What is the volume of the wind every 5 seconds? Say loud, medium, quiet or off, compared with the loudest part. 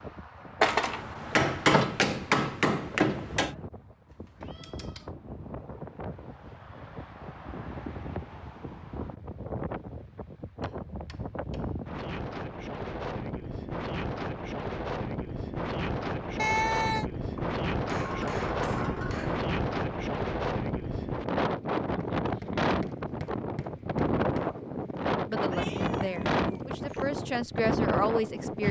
quiet, medium, medium, loud, loud, loud.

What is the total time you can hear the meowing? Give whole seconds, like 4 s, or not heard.
3 s.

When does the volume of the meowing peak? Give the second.
17 s.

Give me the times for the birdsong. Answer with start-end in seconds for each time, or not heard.
not heard.